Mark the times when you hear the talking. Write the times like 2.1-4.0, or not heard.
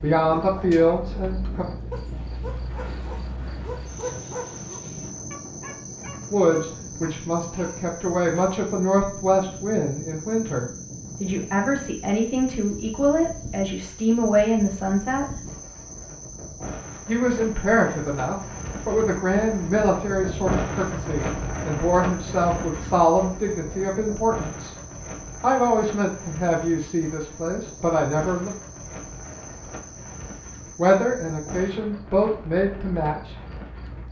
0.0-1.6, 6.3-15.3, 17.1-24.8, 25.4-28.5, 30.8-33.4.